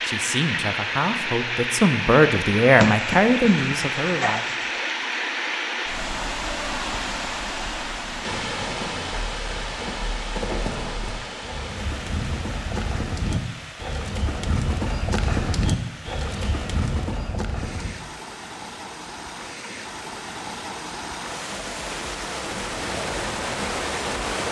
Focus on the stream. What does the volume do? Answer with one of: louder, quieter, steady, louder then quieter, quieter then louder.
quieter then louder.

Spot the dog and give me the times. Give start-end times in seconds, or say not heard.
2.8-4.9.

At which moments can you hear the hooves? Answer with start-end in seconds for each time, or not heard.
8.2-17.9, 22.6-24.4.